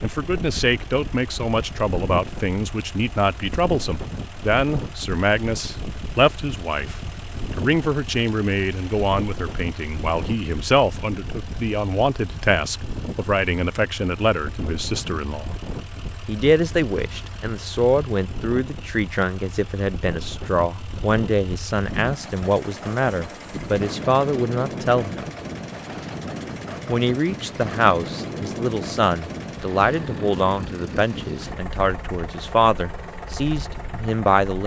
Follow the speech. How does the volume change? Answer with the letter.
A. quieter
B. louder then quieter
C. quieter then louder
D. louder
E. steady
E.